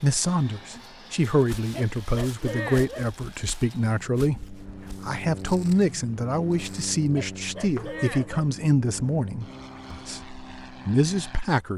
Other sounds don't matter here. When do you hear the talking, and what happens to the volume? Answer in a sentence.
You can hear the talking from 0.0 to 11.7 s, at a steady volume.